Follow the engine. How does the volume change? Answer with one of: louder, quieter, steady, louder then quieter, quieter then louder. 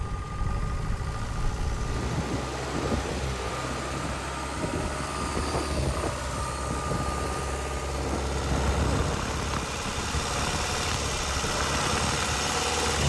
louder.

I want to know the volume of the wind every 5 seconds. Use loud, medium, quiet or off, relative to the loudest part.
loud, loud, medium.